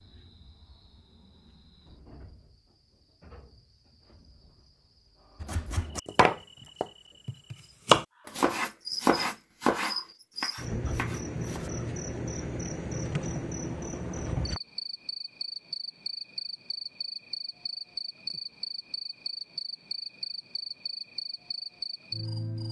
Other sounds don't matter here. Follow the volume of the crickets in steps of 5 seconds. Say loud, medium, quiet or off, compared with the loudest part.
quiet, medium, loud, loud, loud.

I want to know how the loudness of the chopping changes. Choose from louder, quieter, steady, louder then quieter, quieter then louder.
louder then quieter.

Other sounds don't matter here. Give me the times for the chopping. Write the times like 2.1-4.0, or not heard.
5.4-11.7.